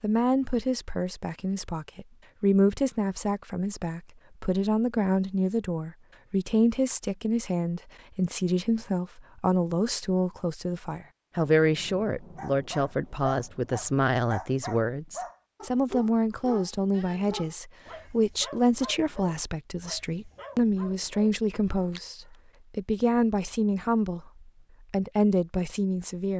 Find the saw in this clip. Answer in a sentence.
The saw can't be heard in this clip.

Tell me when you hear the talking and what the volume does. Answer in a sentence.
You can hear the talking from 0.0 to 26.3 s, at a steady volume.